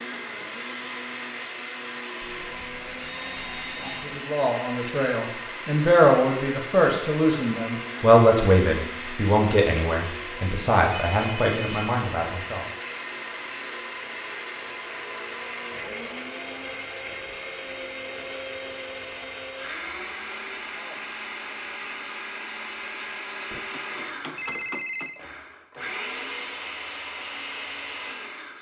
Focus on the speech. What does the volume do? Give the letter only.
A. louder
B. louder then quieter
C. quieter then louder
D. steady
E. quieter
B.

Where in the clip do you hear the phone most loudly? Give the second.
25 s.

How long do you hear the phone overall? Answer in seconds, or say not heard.
5 s.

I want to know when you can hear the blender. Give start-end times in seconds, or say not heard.
0.0-28.5.